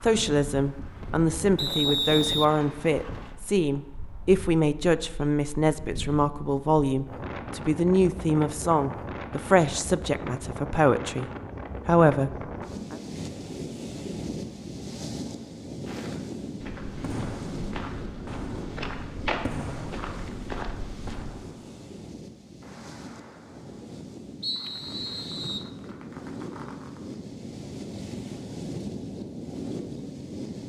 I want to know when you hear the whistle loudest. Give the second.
2 s.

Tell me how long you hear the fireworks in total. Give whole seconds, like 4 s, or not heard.
10 s.